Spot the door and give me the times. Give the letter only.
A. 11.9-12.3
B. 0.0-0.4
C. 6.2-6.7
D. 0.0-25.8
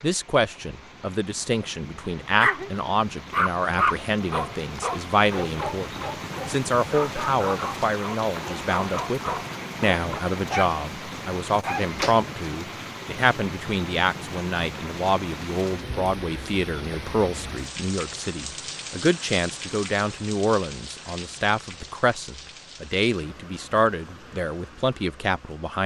A.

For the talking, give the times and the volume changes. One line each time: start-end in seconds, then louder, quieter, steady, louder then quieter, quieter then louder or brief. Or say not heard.
0.0-25.8 steady.